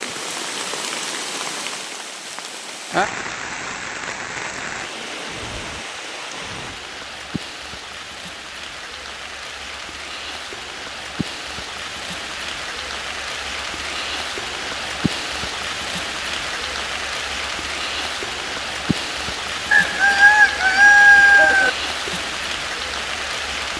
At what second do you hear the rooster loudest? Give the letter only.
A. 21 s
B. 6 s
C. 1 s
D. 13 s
A.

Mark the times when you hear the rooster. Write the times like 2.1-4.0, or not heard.
19.7-21.7.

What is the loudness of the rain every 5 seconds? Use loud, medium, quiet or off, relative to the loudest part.
loud, medium, loud, loud, loud.